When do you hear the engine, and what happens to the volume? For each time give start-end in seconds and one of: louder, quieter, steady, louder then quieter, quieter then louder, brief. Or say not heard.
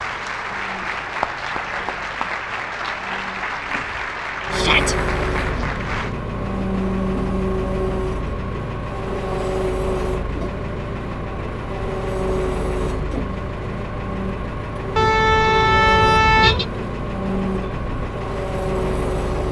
0.0-19.4 louder.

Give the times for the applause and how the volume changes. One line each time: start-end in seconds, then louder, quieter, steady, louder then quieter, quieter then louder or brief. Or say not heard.
0.0-6.2 steady.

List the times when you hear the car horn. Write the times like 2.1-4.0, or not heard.
14.9-16.6.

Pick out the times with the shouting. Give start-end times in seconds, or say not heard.
4.5-5.0.